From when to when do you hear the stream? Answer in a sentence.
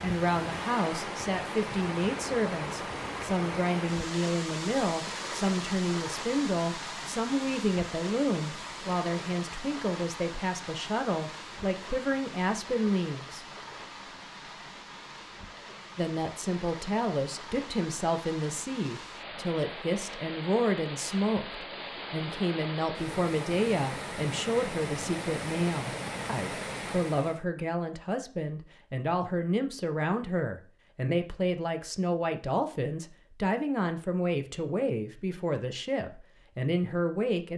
You can hear the stream from 0.0 to 27.4 s.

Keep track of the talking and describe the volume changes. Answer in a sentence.
The volume of the talking stays about the same.